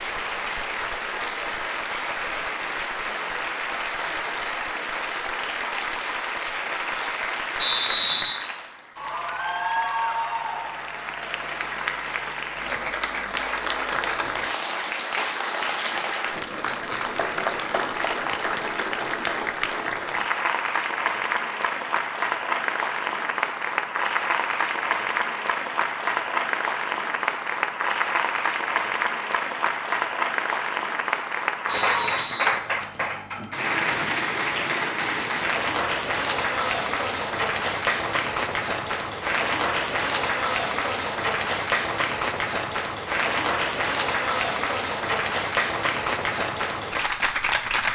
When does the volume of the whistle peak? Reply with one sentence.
The loudest moment of the whistle is at 8 seconds.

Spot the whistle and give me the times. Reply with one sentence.
You can hear the whistle from 7.6 to 8.4 s and from 31.6 to 33.1 s.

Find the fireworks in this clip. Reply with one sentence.
You can't hear the fireworks here.